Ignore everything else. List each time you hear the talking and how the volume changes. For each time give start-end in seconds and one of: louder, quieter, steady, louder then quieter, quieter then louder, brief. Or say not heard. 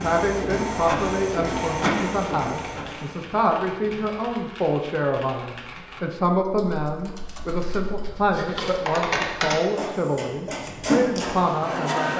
0.0-12.1 steady.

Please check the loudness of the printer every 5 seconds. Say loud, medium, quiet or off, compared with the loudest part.
loud, medium, loud.